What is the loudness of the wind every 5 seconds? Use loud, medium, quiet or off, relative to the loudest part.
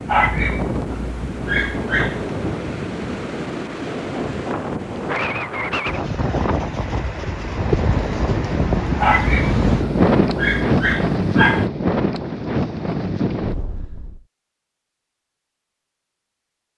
medium, loud, loud, off.